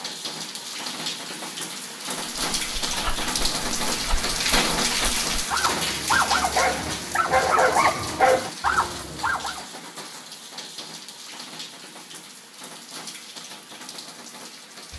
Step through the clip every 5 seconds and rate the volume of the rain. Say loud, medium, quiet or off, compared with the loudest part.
loud, loud, quiet.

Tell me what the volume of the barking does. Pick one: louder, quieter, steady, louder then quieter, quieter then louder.
louder.